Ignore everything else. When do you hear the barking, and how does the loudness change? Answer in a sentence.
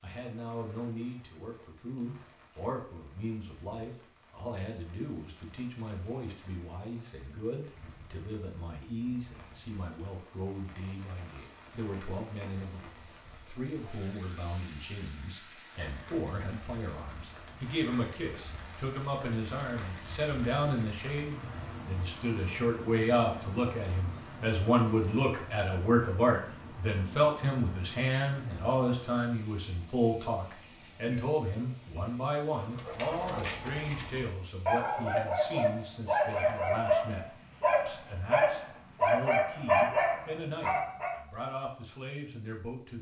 You can hear the barking from 32.5 to 41.2 s, getting louder.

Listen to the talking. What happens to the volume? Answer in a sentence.
The loudness of the talking goes up, then down.